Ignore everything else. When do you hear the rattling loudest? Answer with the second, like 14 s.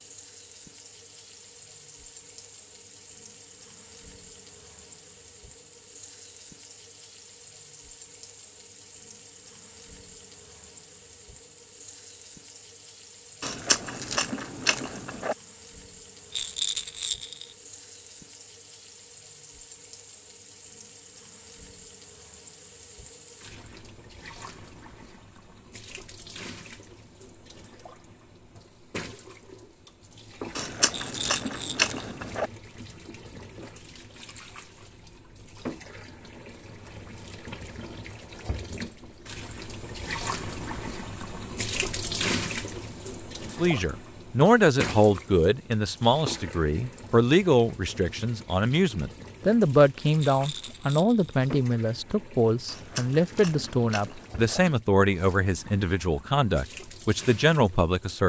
17 s.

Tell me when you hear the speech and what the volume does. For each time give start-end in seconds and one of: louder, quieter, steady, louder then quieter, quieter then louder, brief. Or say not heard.
43.5-58.2 steady.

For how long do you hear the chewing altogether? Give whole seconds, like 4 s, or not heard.
6 s.